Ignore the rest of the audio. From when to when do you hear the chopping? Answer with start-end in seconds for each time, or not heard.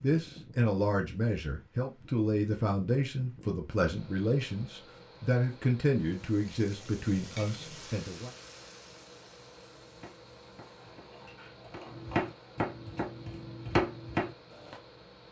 9.8-14.8.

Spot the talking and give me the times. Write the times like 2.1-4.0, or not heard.
0.0-8.3.